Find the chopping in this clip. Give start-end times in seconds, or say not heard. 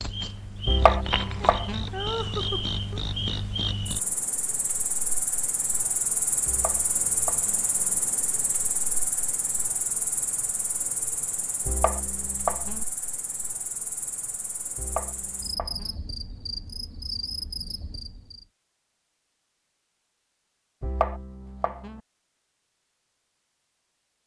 0.7-1.9, 6.5-7.5, 11.7-12.8, 14.8-15.9, 20.8-22.0.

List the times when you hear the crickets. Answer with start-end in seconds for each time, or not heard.
0.0-18.4.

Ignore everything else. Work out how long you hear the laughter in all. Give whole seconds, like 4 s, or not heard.
2 s.